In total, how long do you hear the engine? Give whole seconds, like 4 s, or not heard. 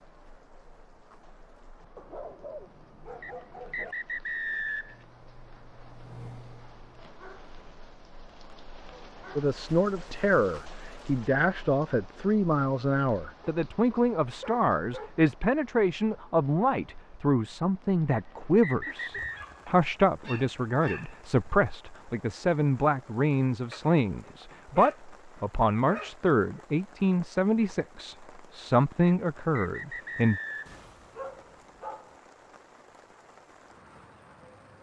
2 s.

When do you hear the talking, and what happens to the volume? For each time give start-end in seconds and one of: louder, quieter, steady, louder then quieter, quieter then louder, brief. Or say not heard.
9.3-30.4 steady.